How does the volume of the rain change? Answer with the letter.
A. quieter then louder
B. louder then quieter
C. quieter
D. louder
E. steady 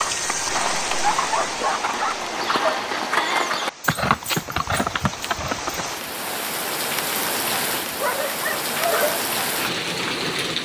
A.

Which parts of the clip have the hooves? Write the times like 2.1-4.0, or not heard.
0.0-5.8.